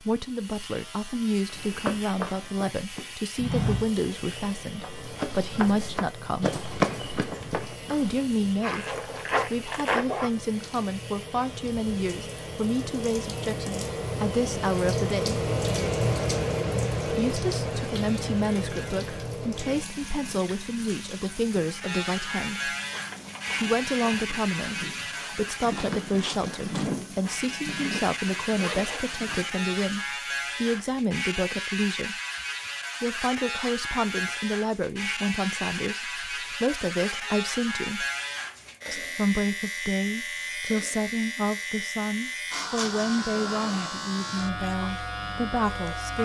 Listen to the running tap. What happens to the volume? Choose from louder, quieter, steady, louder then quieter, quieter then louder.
louder then quieter.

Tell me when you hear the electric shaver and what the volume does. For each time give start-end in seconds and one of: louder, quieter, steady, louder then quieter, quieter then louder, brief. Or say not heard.
0.0-46.2 louder.